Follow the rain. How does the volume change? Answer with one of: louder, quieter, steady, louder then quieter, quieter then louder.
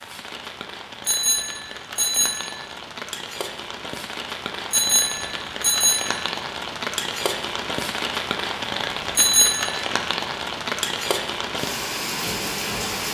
louder.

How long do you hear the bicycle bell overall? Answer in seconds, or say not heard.
4 s.